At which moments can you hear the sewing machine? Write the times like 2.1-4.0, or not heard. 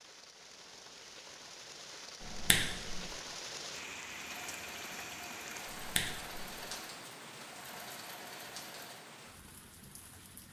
4.2-9.1.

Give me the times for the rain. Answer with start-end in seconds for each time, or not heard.
0.0-10.4.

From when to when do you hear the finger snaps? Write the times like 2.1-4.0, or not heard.
2.2-3.1, 5.7-6.6.